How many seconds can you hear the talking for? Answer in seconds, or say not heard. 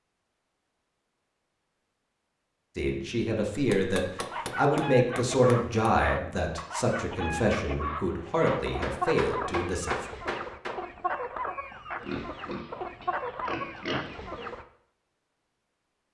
7 s.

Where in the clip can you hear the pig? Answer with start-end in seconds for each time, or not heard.
12.0-14.5.